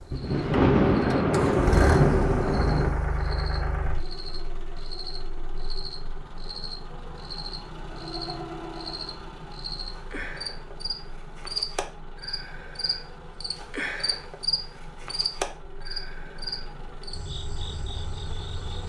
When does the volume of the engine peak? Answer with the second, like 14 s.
2 s.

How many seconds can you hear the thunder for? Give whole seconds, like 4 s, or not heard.
3 s.